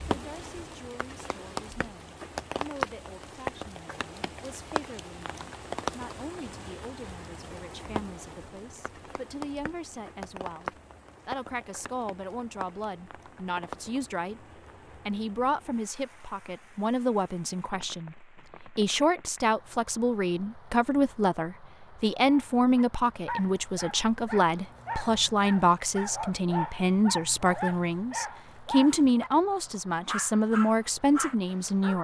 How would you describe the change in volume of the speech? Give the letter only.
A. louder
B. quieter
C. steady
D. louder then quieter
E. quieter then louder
A.